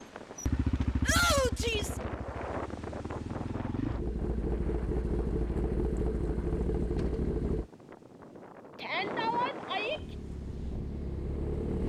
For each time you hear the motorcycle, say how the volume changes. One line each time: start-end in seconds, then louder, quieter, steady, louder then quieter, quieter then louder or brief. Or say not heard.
0.0-7.7 quieter then louder
9.9-11.8 brief.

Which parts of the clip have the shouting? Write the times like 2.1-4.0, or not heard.
1.1-2.0, 8.8-10.0.